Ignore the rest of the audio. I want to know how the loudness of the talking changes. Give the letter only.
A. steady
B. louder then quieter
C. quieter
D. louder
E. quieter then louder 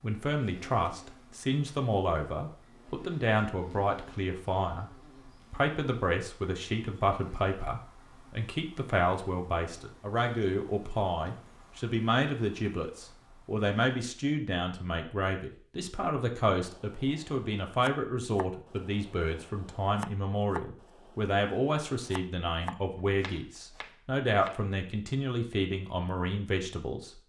A.